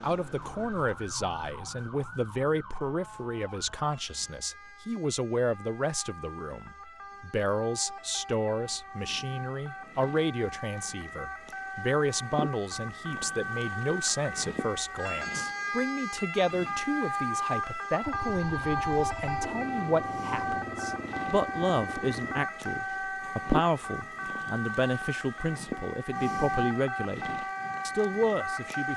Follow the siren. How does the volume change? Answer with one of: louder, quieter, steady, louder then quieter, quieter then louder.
louder.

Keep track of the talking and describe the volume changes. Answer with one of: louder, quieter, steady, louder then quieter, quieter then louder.
steady.